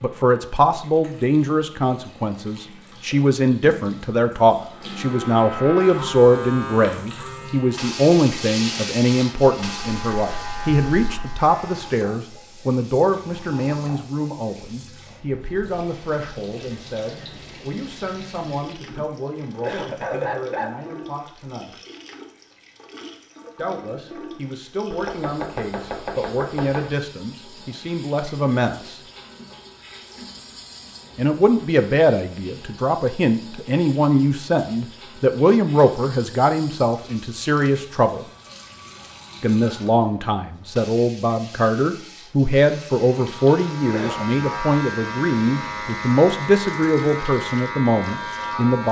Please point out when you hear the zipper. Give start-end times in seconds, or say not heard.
not heard.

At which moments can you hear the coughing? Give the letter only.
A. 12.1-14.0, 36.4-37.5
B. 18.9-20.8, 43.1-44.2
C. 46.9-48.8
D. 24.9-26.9
B.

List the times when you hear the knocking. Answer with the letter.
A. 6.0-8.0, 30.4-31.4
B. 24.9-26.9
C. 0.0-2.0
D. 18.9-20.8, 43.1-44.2
B.